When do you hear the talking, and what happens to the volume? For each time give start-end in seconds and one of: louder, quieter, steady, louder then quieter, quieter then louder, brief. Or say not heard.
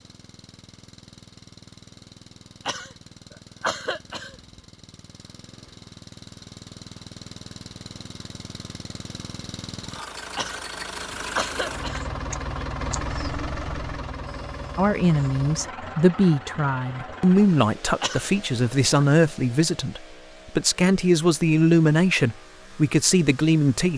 14.8-23.9 steady.